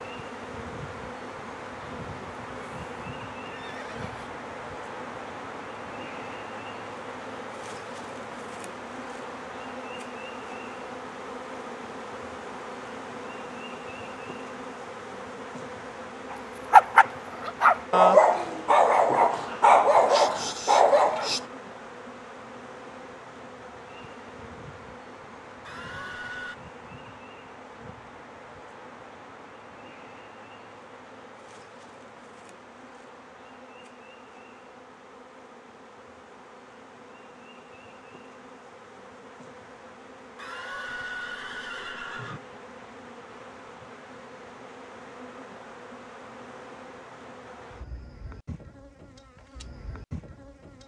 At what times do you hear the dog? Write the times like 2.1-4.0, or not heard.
16.3-21.4.